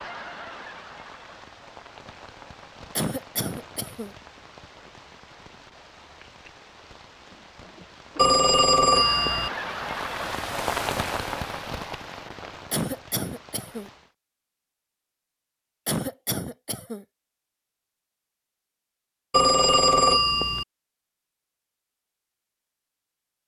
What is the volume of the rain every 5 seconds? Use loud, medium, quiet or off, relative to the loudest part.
medium, medium, loud, off, off.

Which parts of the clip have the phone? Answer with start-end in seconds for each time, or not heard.
8.2-9.5, 19.3-20.6.